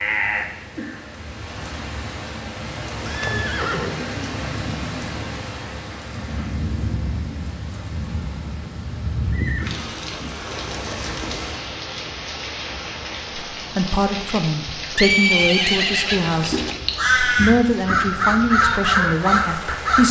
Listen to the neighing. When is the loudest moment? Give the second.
15 s.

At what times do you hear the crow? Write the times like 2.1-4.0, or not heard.
16.3-20.0.